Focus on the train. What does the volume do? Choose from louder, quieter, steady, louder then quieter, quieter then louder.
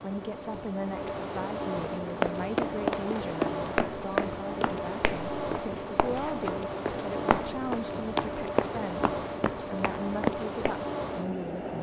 steady.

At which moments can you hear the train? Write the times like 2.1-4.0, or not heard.
0.0-11.7.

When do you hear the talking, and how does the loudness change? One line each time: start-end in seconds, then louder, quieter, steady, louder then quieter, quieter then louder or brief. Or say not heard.
0.0-11.7 steady.